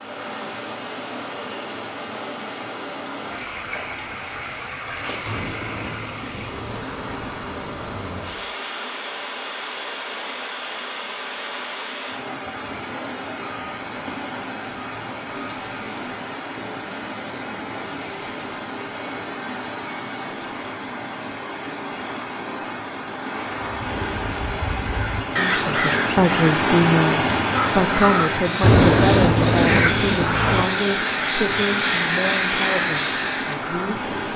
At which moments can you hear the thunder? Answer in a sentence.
You can hear the thunder from 5.2 to 7.2 s and from 28.6 to 30.6 s.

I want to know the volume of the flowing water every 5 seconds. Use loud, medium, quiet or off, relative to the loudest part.
medium, medium, medium, medium, medium, loud, medium.